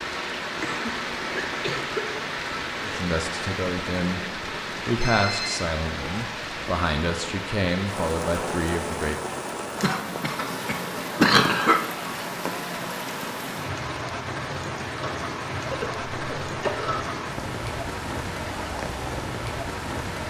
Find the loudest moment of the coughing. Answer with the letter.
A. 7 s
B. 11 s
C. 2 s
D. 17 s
B.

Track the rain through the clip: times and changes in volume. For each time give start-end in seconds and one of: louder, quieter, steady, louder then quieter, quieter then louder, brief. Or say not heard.
0.0-20.2 steady.